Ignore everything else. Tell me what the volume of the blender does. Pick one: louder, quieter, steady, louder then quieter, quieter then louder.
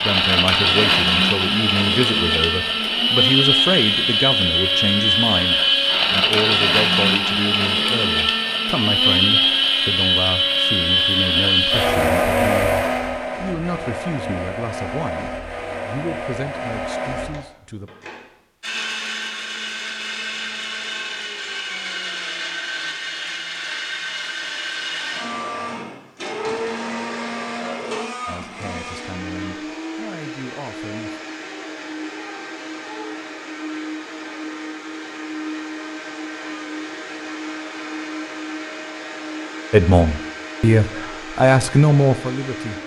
quieter.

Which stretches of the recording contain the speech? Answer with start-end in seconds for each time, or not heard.
0.0-17.9, 28.2-31.1, 39.7-42.8.